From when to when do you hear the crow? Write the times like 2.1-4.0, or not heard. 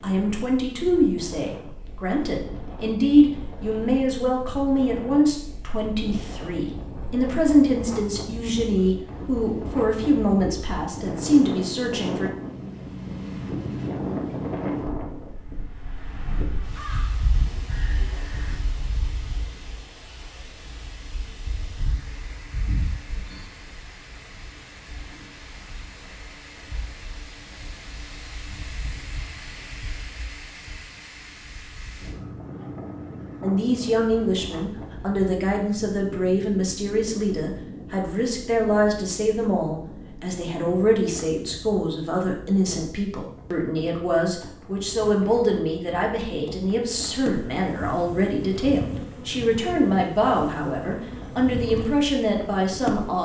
16.6-19.2.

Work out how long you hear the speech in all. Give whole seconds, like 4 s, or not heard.
32 s.